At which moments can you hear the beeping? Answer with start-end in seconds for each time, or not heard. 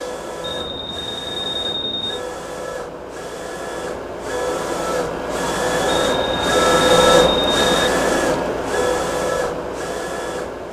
0.4-2.2, 6.0-7.8.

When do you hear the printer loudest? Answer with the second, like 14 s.
7 s.